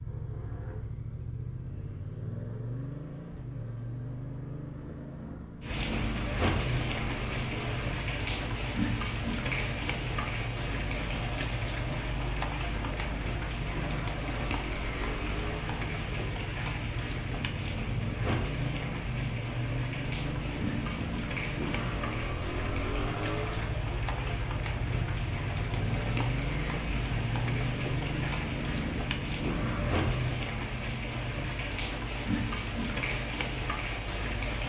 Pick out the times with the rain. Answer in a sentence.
You can hear the rain from 5.6 to 34.6 s.